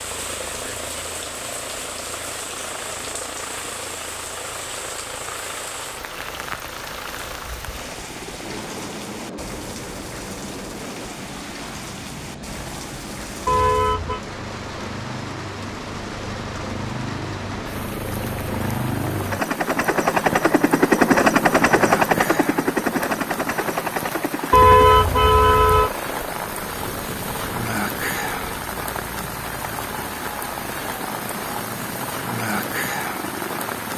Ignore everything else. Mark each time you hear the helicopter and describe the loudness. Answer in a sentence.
You can hear the helicopter from 0.0 to 33.9 s, getting louder then quieter.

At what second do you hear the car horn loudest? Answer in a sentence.
The volume of the car horn peaks at 25 seconds.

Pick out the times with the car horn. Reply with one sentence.
The car horn can be heard from 13.4 to 14.2 s and from 24.5 to 25.9 s.